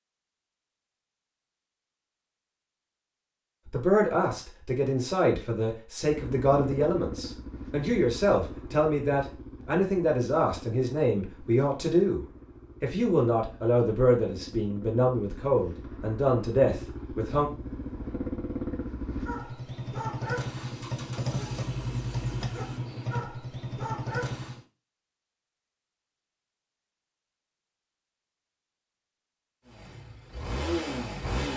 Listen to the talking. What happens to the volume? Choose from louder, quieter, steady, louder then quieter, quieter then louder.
steady.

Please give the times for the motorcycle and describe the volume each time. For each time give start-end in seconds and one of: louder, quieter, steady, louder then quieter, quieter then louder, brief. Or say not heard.
6.0-24.6 quieter then louder
29.6-31.5 brief.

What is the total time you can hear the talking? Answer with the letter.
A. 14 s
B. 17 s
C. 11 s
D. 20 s
A.